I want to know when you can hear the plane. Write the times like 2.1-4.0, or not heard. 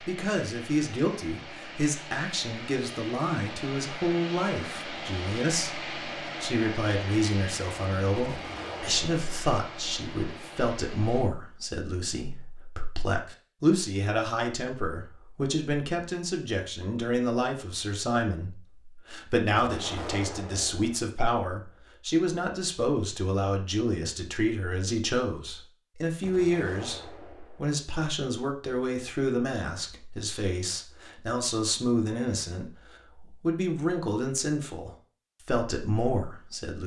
0.0-11.3.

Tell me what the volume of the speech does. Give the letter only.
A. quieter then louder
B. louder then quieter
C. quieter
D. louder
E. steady
E.